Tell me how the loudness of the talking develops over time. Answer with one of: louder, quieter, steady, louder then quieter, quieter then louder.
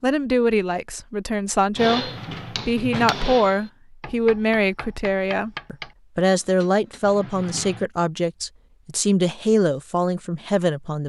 steady.